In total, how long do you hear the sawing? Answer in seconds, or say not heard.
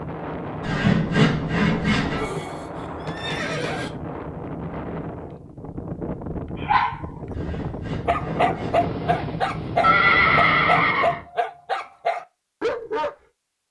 3 s.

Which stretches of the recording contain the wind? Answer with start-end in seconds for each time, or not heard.
0.0-11.2.